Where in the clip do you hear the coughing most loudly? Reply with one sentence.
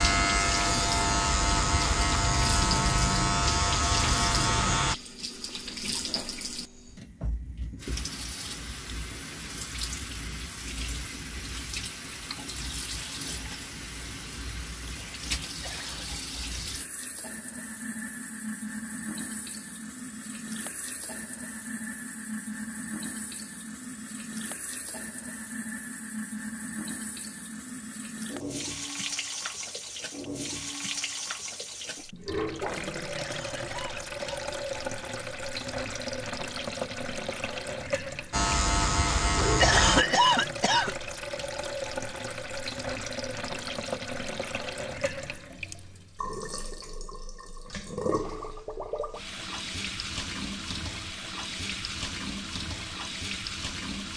The loudest moment of the coughing is at 40 seconds.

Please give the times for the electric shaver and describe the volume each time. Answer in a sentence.
The electric shaver can be heard from 0.0 to 5.0 s, at a steady volume; and briefly from 38.3 to 40.0 s.